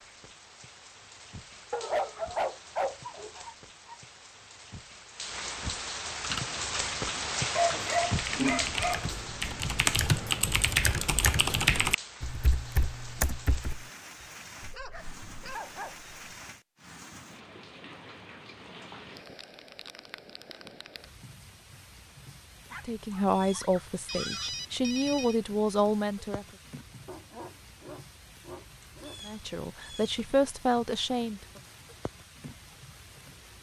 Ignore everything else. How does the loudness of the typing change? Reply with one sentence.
The loudness of the typing goes up, then down.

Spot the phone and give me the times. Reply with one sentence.
The phone can be heard from 24.1 to 25.4 s.